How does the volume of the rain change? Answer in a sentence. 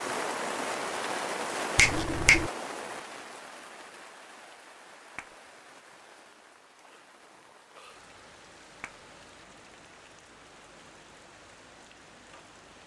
The loudness of the rain goes down.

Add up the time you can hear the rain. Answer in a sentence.
The rain can be heard for 13 seconds in total.